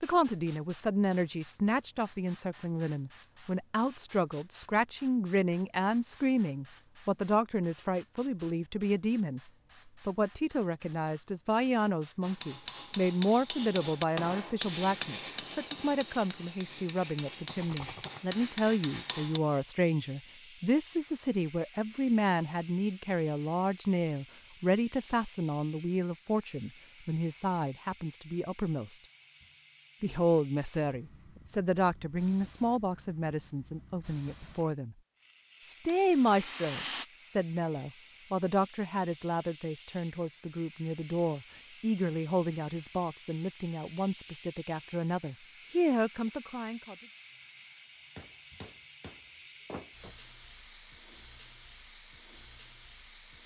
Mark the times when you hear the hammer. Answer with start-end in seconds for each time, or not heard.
12.2-19.4, 48.1-50.1.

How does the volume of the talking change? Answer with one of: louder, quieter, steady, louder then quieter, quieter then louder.
steady.